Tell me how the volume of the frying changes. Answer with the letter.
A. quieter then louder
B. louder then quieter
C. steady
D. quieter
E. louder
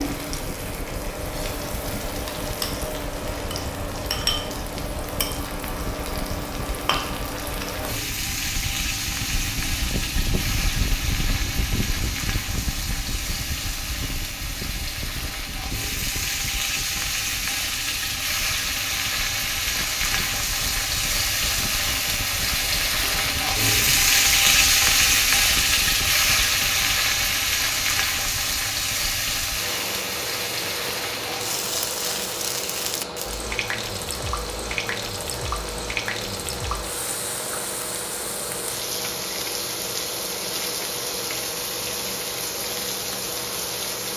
B.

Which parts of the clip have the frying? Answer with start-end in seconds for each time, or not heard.
0.0-44.1.